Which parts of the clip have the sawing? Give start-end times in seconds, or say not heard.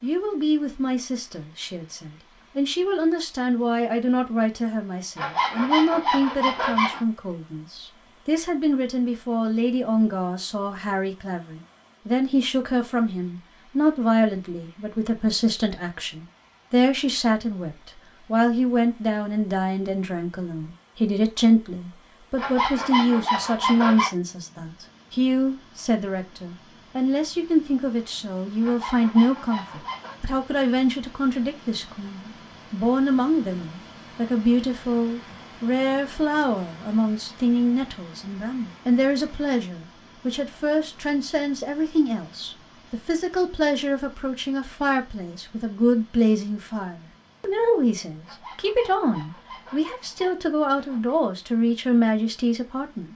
5.2-7.0, 22.4-24.1, 28.6-30.2, 48.2-51.2.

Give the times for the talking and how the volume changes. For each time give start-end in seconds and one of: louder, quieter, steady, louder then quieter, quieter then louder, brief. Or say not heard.
0.0-53.1 steady.